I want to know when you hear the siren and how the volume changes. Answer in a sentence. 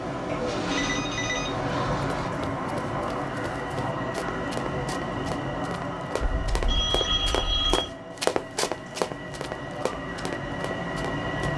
You can't hear the siren here.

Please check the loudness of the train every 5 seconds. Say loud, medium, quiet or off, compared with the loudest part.
loud, medium, loud.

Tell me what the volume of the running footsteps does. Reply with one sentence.
The volume of the running footsteps goes up, then down.